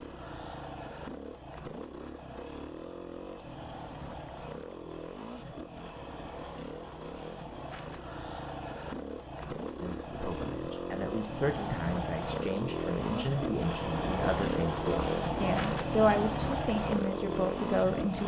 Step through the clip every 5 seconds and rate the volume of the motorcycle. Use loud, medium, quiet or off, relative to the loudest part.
medium, medium, loud, loud.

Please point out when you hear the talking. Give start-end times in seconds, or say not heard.
9.7-18.2.